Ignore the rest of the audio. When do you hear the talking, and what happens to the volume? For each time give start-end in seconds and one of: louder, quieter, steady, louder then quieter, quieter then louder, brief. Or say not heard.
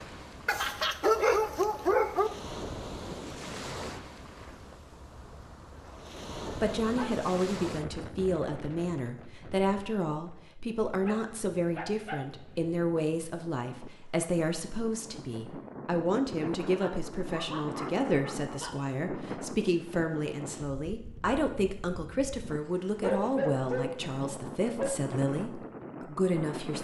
6.5-26.7 steady.